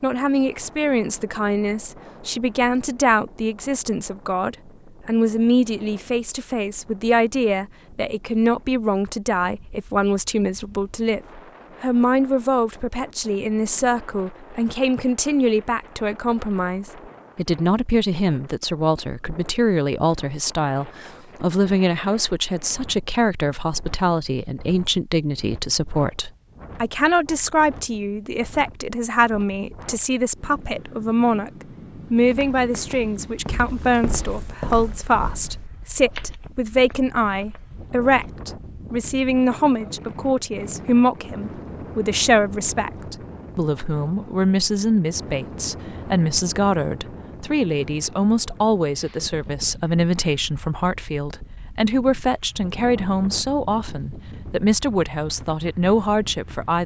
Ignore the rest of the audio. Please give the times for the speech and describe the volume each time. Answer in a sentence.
The speech can be heard from 0.0 to 56.8 s, at a steady volume.